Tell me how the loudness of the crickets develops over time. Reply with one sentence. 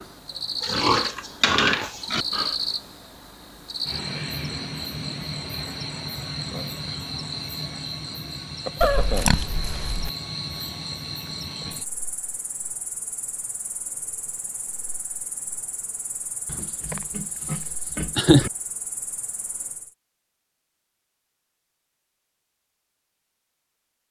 The volume of the crickets goes down.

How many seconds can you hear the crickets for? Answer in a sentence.
The crickets can be heard for 20 seconds in total.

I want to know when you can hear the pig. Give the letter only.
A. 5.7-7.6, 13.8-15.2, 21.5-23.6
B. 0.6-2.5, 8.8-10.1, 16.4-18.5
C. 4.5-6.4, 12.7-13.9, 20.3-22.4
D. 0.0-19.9
B.